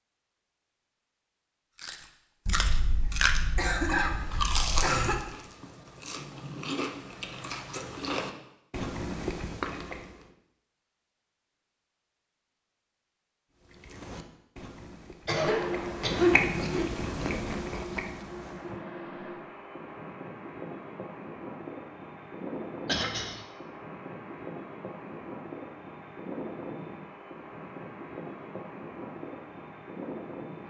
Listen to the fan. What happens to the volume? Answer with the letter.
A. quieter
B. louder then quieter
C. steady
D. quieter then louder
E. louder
C.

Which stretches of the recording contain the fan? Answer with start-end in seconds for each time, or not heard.
15.3-30.6.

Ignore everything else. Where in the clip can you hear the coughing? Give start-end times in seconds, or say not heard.
2.5-5.2, 15.2-16.9, 22.9-23.4.